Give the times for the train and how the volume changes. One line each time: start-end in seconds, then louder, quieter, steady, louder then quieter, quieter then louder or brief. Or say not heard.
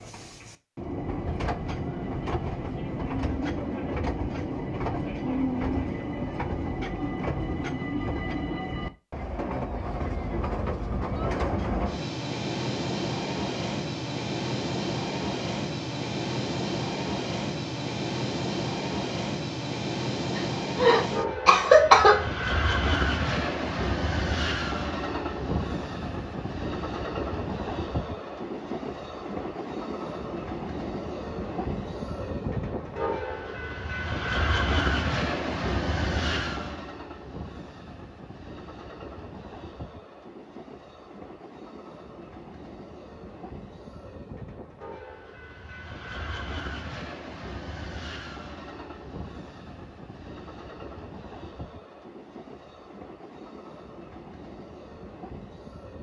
0.0-55.9 quieter.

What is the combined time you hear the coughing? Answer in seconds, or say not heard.
2 s.